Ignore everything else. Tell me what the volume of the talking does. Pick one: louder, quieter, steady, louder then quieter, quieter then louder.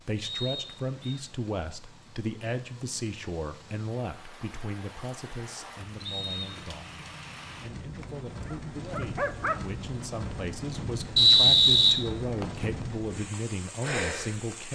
quieter then louder.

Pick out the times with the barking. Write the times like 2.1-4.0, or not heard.
8.0-9.7.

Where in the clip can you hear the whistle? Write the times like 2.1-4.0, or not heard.
0.2-1.2, 6.0-6.5, 11.2-12.5.